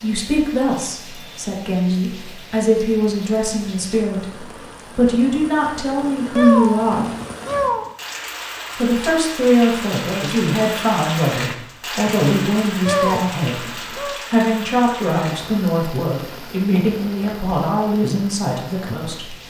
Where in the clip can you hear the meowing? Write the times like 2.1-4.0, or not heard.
6.3-7.9, 12.8-14.2.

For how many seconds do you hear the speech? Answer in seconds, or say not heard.
18 s.